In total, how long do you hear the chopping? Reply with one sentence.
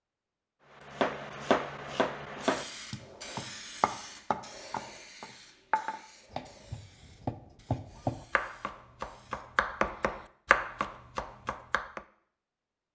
You can hear the chopping for 11 seconds altogether.